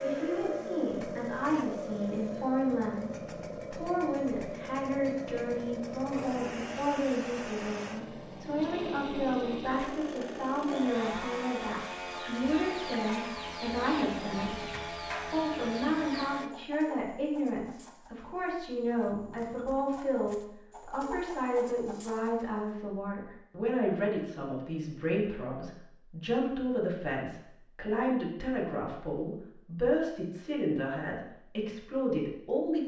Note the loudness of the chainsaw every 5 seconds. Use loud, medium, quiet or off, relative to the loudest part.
loud, loud, loud, loud, off, off, off.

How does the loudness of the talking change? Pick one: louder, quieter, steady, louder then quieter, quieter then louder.
steady.